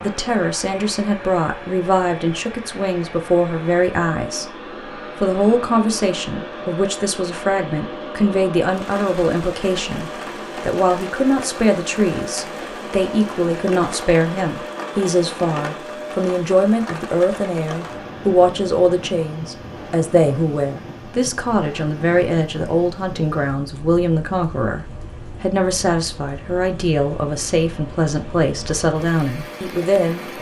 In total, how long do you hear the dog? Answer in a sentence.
You can't hear the dog here.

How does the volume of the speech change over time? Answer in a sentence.
The volume of the speech stays about the same.